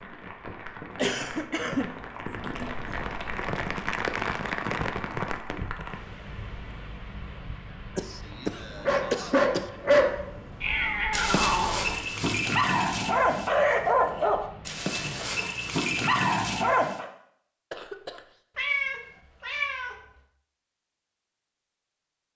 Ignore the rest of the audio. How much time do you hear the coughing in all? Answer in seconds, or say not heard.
4 s.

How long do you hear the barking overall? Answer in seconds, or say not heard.
8 s.